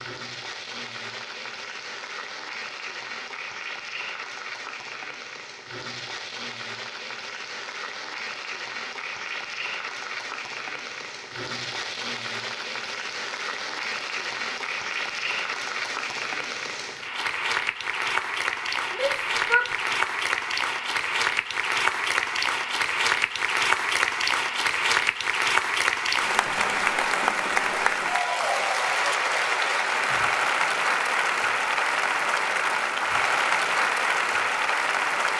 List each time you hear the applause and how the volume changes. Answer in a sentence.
You can hear the applause from 0.0 to 35.3 s, getting louder.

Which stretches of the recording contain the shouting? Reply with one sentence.
You can hear the shouting from 18.9 to 19.9 s.